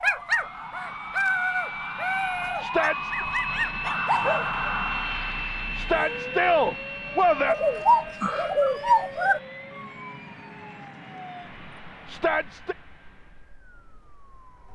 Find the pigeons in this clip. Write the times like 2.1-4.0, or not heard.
7.5-9.4.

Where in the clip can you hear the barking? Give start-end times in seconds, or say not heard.
0.0-4.8.